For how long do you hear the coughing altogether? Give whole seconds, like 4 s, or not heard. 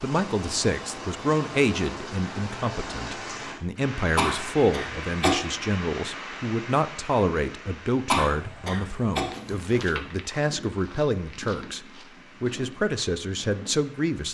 2 s.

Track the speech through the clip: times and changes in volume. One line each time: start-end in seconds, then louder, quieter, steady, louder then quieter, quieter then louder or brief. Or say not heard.
0.0-14.3 steady.